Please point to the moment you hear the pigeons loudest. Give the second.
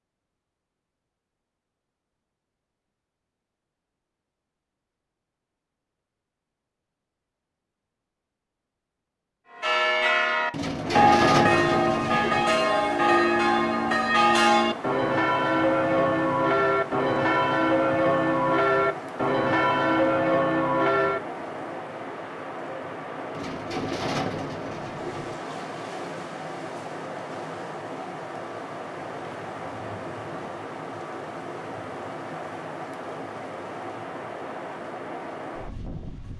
11 s.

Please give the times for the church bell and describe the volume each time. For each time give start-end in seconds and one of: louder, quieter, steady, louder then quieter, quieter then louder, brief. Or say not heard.
9.5-21.2 steady.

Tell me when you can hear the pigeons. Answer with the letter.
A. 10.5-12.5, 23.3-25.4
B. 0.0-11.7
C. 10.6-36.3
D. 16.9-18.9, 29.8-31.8
A.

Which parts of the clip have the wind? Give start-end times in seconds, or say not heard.
10.6-36.3.